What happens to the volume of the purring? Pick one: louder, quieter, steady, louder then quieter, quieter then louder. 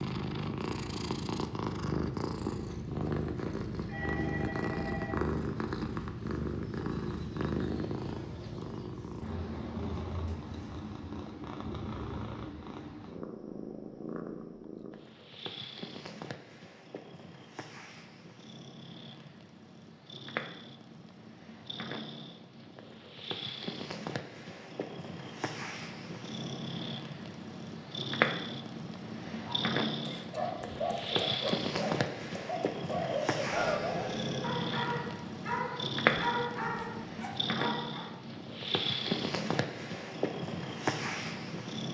quieter then louder.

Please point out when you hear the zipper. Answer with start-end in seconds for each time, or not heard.
not heard.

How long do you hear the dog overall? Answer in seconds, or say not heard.
9 s.